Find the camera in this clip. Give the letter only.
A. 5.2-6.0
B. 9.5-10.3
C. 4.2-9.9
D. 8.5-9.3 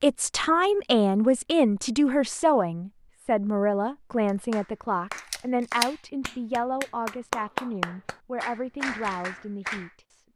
A.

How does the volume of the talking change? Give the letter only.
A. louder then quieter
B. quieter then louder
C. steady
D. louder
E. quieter
E.